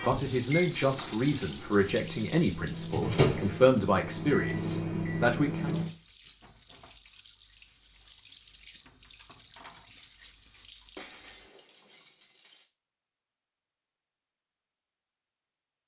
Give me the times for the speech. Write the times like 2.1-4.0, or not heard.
0.0-5.8.